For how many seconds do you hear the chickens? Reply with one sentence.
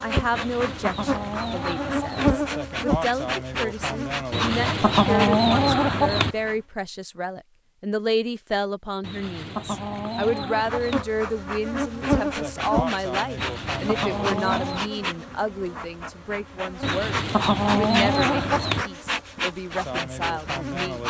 The chickens can be heard for 10 seconds in total.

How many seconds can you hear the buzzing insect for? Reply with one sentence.
You can hear the buzzing insect for 17 seconds altogether.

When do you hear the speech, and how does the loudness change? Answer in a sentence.
The speech can be heard from 0.0 to 21.0 s, at a steady volume.